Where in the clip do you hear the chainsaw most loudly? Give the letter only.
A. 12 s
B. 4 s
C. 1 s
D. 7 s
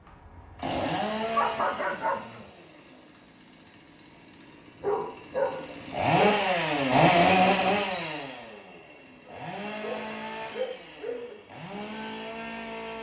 D.